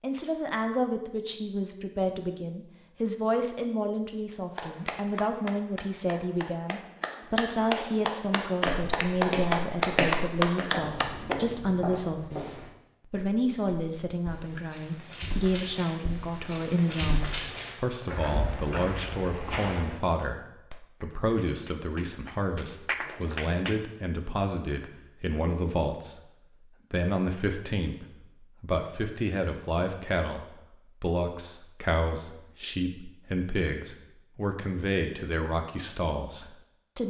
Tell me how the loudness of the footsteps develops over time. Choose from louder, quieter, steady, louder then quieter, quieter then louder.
quieter then louder.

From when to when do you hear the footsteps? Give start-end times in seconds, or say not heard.
8.7-19.9.